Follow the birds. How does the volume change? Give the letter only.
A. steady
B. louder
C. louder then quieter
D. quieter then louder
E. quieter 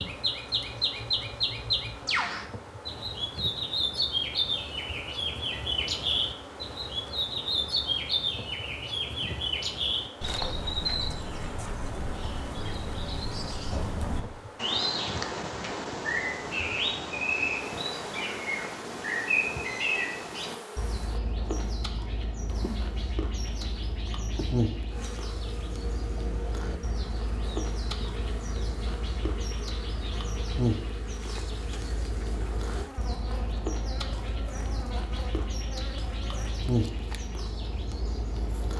E.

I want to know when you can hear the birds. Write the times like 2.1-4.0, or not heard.
0.0-38.7.